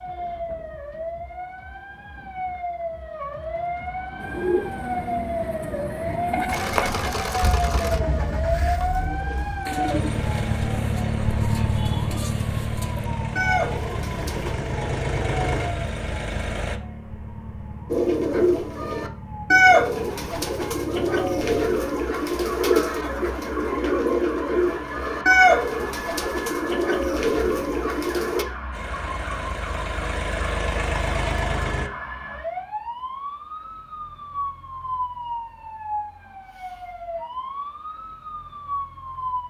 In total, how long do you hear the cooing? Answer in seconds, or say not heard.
21 s.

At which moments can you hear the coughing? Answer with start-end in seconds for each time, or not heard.
not heard.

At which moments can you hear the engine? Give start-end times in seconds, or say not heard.
6.5-16.8, 28.7-31.9.